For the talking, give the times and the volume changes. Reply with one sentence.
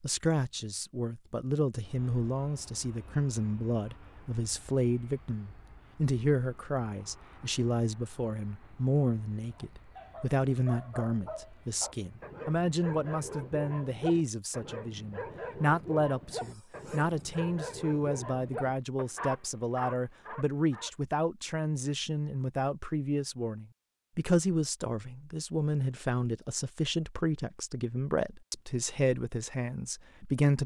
You can hear the talking from 0.0 to 30.6 s, at a steady volume.